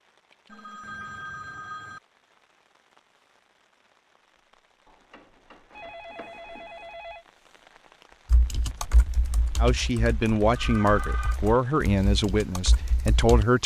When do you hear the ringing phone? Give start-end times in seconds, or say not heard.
0.5-2.0, 4.8-7.2, 10.5-11.4.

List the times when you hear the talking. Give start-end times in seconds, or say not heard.
9.6-13.6.